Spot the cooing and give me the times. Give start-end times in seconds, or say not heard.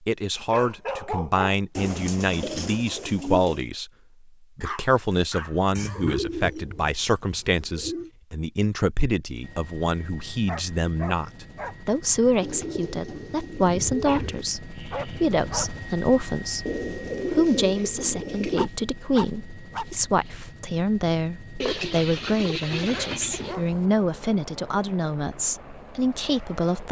1.8-3.6, 5.8-8.1, 12.4-14.4, 16.6-18.6, 21.6-23.6.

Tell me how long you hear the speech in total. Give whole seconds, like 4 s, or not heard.
26 s.